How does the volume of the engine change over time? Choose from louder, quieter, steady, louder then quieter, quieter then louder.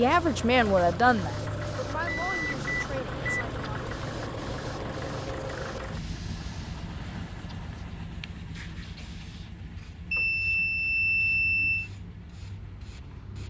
quieter.